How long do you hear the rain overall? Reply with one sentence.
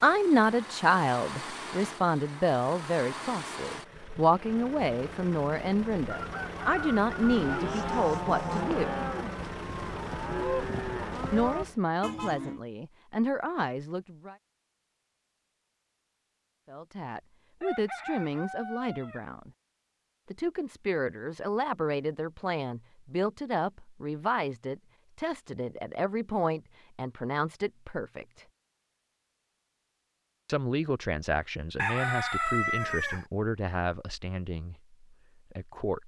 You can't hear the rain here.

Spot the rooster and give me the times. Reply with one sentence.
The rooster can be heard from 6.2 to 7.6 s, from 17.6 to 19.2 s and from 31.8 to 33.2 s.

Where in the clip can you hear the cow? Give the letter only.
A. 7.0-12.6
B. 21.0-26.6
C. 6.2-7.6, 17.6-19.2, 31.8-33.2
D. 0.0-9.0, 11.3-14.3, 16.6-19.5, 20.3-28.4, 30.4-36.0
A.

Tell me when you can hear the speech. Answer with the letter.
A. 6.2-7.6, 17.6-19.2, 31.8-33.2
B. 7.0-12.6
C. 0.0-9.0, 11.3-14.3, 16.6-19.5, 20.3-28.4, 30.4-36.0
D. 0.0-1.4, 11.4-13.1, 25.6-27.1
C.